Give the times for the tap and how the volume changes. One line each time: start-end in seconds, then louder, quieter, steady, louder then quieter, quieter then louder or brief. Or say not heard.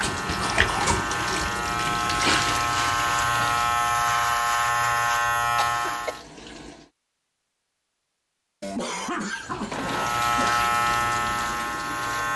0.0-6.9 quieter
9.3-12.3 brief.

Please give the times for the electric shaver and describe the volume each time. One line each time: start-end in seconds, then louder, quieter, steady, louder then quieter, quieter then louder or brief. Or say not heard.
0.0-6.2 louder
9.7-12.3 brief.